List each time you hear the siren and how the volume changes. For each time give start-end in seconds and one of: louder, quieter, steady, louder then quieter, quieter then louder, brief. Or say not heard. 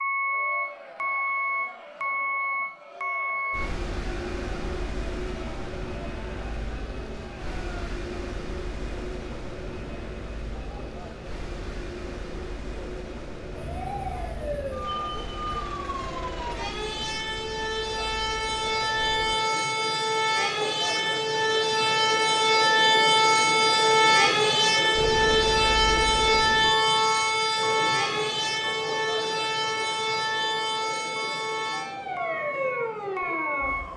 13.6-33.9 louder then quieter.